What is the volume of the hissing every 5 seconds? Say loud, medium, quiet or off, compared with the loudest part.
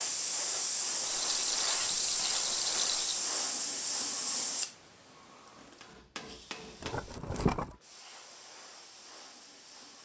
loud, quiet.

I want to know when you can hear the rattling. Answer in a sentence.
The rattling can be heard from 1.1 to 3.2 s and from 6.8 to 7.8 s.